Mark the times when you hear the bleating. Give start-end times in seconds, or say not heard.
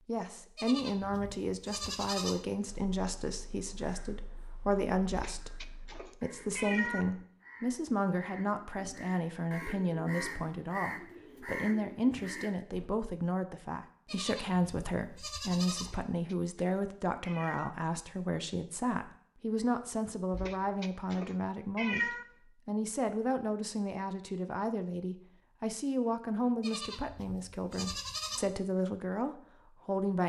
0.6-2.5, 14.1-15.9, 26.6-28.5.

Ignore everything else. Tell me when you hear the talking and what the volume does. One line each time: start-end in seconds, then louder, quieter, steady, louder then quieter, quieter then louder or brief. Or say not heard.
0.1-30.2 steady.